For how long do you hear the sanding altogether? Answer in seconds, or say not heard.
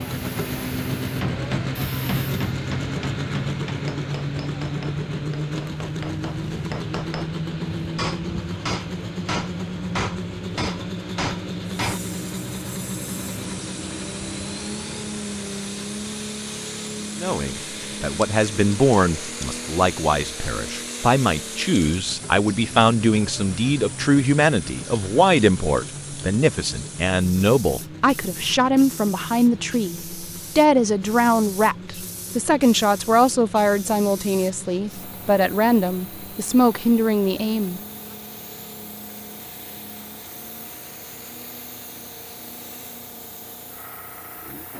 not heard.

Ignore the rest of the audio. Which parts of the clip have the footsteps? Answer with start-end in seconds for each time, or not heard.
not heard.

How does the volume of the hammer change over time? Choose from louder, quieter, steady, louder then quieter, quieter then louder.
quieter then louder.